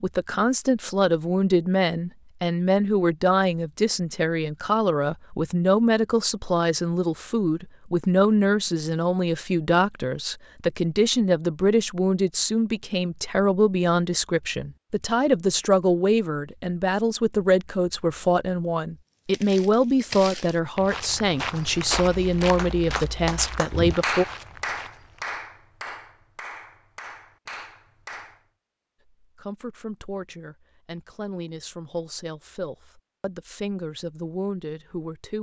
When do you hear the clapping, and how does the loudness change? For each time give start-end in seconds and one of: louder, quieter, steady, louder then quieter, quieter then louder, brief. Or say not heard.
22.6-28.4 quieter.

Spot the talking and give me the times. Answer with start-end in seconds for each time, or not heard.
0.0-24.2, 29.2-35.3.